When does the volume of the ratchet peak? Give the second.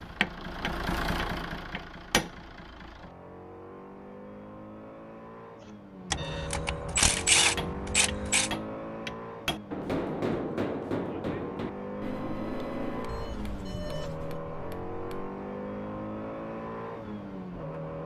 7 s.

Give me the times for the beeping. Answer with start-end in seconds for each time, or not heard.
5.6-6.5, 13.1-14.4.